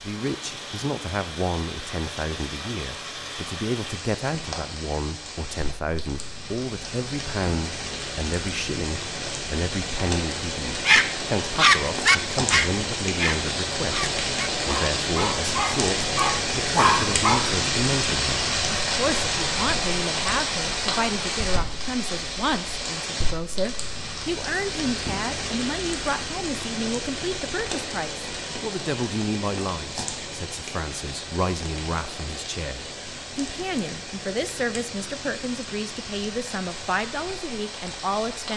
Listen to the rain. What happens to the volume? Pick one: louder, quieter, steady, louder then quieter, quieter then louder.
louder then quieter.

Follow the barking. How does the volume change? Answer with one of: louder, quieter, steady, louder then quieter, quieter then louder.
quieter then louder.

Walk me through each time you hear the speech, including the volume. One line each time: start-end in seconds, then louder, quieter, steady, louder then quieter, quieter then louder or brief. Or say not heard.
0.0-38.5 steady.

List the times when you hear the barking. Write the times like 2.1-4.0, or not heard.
10.8-17.4.